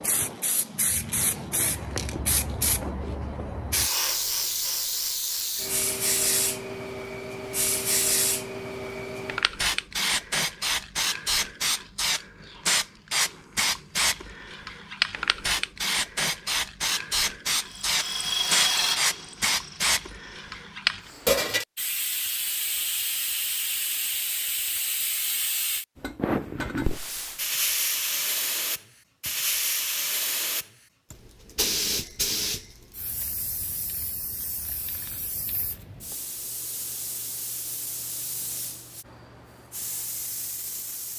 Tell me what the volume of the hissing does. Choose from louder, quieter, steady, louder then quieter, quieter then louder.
quieter.